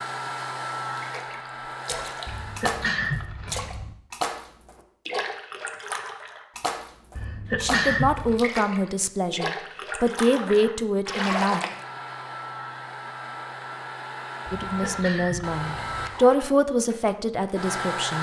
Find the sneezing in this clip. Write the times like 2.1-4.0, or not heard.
2.2-4.0, 7.2-8.4, 14.6-16.1.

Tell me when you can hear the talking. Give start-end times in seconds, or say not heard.
7.6-11.6, 14.5-18.1.